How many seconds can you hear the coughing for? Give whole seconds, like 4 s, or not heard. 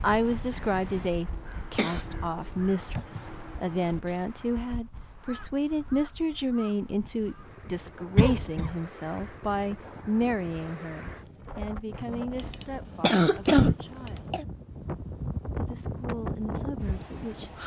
4 s.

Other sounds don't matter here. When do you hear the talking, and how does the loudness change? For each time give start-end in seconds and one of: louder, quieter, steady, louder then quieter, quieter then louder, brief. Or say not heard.
0.0-14.3 quieter
15.6-17.6 brief.